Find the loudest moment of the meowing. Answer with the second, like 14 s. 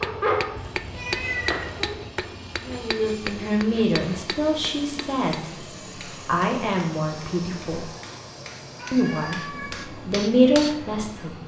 1 s.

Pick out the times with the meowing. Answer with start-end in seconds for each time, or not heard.
0.6-1.9, 8.8-9.9.